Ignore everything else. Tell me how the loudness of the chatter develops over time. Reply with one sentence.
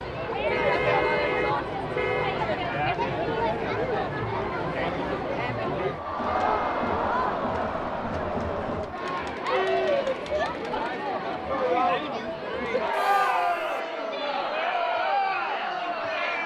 The loudness of the chatter stays about the same.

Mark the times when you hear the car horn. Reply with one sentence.
The car horn can be heard from 0.5 to 2.5 s, from 6.2 to 6.8 s and from 12.9 to 13.8 s.